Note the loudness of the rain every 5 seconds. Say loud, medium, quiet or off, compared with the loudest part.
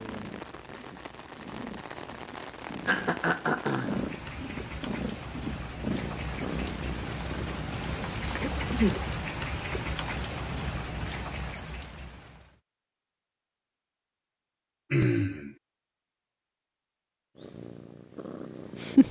medium, loud, loud, off.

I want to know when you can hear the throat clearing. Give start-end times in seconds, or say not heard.
2.9-4.1, 8.4-9.0, 14.9-15.6.